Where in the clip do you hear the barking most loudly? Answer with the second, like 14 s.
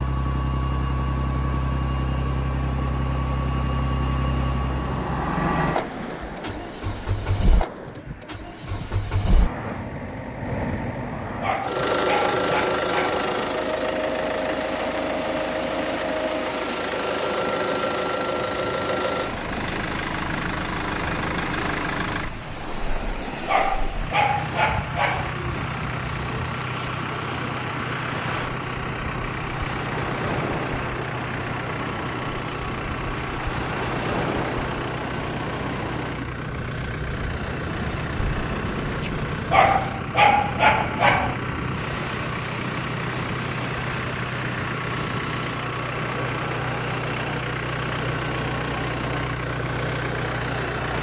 40 s.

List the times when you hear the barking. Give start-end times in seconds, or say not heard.
11.4-13.2, 23.4-25.4, 39.5-41.4.